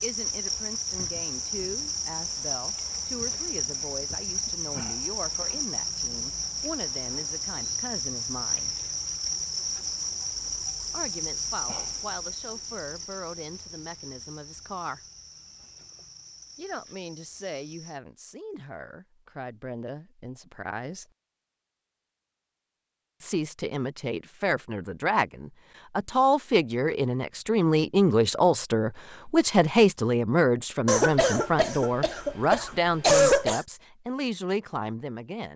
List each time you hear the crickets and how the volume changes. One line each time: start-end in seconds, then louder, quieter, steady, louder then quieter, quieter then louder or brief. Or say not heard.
0.0-18.0 quieter.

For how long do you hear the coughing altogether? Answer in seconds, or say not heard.
3 s.